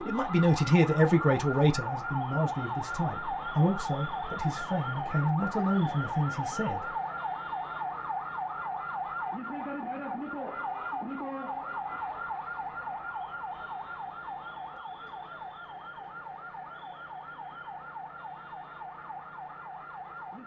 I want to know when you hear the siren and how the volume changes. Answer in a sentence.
You can hear the siren from 0.0 to 20.4 s, getting quieter.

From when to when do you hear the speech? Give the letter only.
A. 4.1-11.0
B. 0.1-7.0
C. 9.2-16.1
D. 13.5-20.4
B.